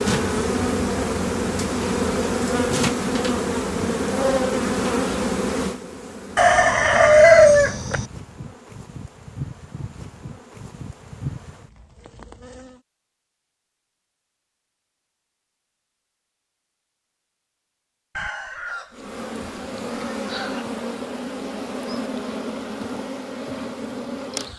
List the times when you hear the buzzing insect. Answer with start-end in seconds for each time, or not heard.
0.0-12.8, 18.9-24.5.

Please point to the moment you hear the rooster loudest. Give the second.
7 s.